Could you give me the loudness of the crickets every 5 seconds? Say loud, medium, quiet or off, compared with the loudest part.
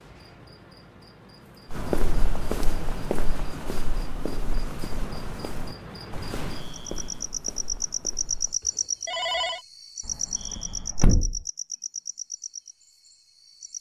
quiet, loud, loud.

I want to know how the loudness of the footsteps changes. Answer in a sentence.
The volume of the footsteps goes down.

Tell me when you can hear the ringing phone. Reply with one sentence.
You can hear the ringing phone from 8.6 to 9.7 s.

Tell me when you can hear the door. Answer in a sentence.
You can hear the door from 10.1 to 11.4 s.